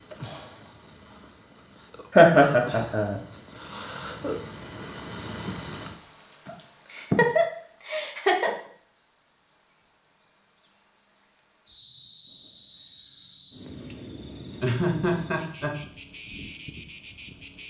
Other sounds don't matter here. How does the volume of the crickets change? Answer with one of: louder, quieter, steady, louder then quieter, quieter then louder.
louder then quieter.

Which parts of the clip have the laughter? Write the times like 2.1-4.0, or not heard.
2.1-3.2, 6.5-8.5, 14.6-15.8.